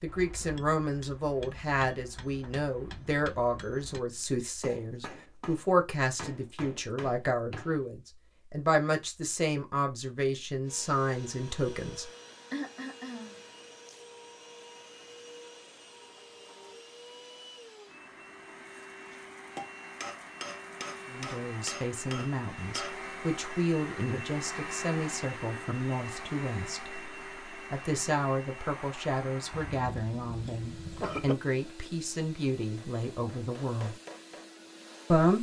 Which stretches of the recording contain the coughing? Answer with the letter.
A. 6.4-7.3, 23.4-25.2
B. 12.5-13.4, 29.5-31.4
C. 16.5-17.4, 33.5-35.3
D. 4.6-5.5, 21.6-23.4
B.